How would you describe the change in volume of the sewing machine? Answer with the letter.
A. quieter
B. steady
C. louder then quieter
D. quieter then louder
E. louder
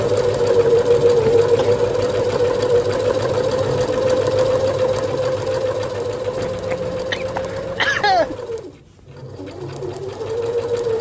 A.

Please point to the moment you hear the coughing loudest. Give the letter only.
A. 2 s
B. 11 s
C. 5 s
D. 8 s
D.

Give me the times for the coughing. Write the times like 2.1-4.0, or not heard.
1.2-1.7, 6.3-8.3.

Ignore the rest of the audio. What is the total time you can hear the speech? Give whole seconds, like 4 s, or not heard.
not heard.